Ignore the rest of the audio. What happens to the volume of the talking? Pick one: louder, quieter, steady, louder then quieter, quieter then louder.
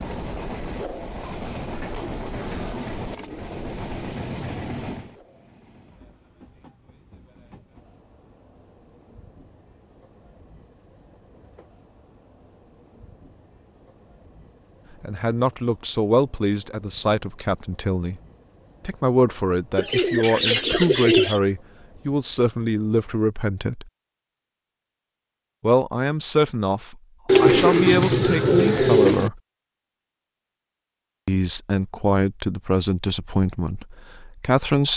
steady.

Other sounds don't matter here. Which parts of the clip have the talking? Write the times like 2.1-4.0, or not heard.
15.0-18.2, 18.9-23.9, 25.6-29.4, 31.2-34.9.